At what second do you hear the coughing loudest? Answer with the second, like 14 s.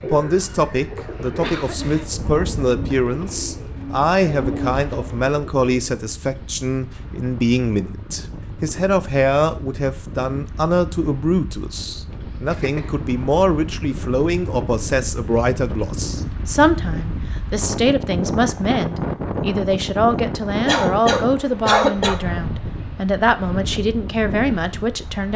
22 s.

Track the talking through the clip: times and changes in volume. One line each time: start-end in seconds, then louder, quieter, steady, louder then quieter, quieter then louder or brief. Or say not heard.
0.0-25.3 steady.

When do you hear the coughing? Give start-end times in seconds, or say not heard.
1.4-2.1, 12.4-13.0, 20.6-22.2.